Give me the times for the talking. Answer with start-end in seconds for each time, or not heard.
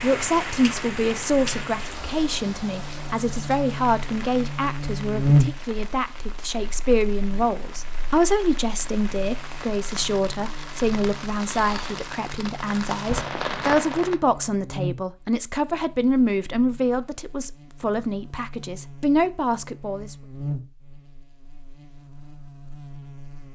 0.0-20.1.